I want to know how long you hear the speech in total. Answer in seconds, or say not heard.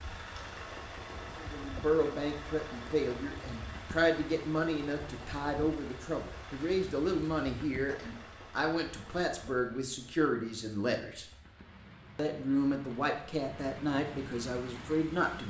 13 s.